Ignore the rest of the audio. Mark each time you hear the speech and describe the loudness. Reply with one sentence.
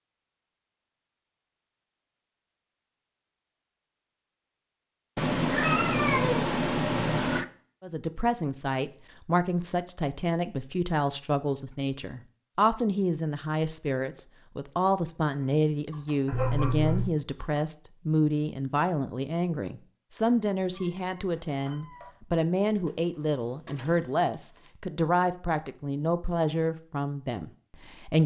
The speech can be heard from 7.8 to 28.2 s, at a steady volume.